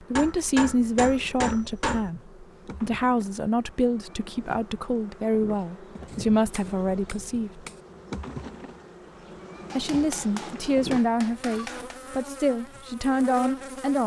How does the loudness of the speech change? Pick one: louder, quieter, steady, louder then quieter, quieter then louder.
steady.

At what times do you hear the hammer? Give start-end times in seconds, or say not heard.
0.1-2.1, 6.0-7.8, 9.7-11.9.